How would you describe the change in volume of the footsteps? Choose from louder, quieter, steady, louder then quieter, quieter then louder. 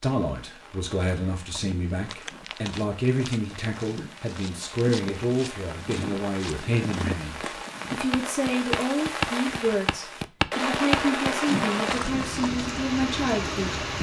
louder.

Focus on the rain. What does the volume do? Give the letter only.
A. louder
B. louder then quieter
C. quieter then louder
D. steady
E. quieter
A.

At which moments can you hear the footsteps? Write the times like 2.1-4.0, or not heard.
0.9-12.7.